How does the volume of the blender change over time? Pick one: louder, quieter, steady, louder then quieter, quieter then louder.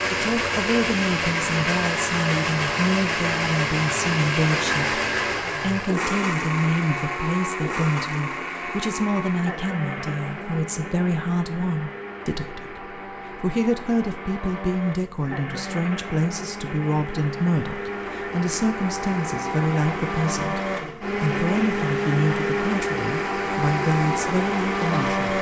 quieter then louder.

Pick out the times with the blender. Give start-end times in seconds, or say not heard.
0.0-25.3.